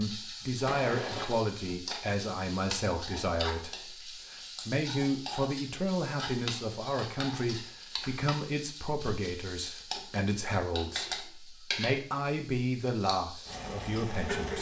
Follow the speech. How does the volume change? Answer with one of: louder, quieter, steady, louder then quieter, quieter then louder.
steady.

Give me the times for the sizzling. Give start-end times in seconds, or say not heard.
0.0-14.5.